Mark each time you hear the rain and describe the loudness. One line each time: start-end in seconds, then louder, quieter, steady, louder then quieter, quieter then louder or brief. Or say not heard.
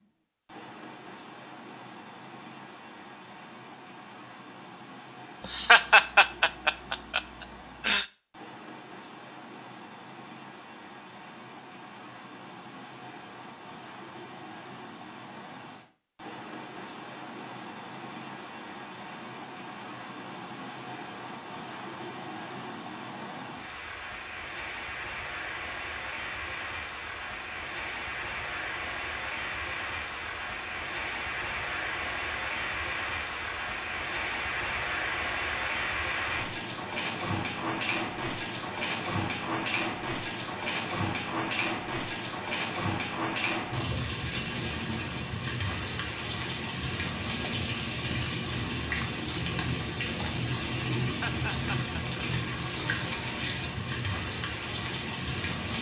0.0-55.7 louder.